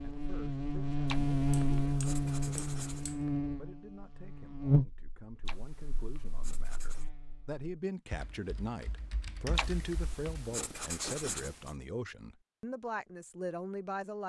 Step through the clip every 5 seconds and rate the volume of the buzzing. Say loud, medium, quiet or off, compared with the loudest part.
loud, quiet, off.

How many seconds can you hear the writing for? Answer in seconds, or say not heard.
6 s.